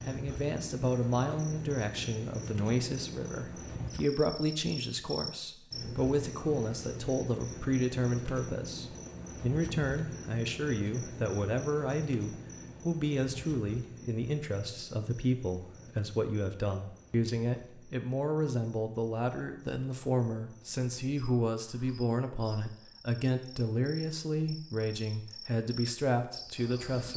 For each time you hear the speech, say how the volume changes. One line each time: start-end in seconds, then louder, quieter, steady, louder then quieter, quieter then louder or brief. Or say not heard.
0.1-27.1 steady.